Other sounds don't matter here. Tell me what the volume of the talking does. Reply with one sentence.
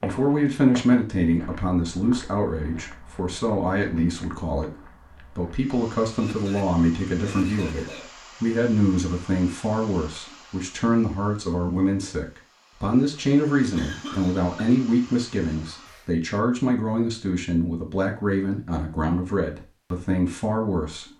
The loudness of the talking stays about the same.